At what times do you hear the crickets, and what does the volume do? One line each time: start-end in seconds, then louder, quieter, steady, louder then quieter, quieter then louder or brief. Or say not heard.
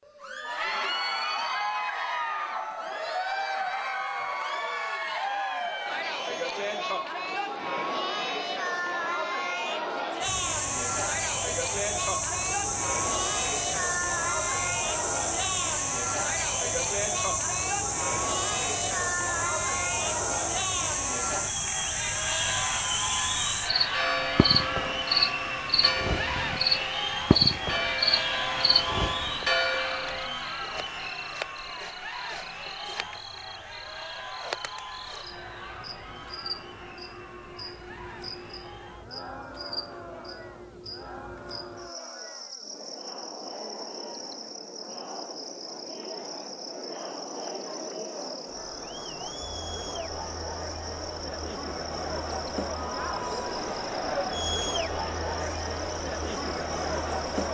10.2-57.4 quieter.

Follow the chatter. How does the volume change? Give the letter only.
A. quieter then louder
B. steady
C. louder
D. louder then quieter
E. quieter
A.